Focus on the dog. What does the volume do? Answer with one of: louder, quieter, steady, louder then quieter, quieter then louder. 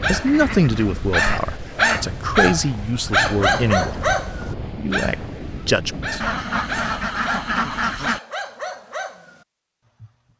quieter.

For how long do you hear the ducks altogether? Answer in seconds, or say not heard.
4 s.